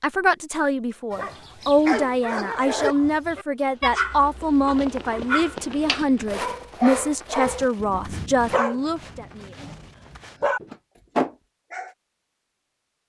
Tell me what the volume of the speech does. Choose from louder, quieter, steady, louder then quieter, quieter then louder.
steady.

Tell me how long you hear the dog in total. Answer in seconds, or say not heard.
11 s.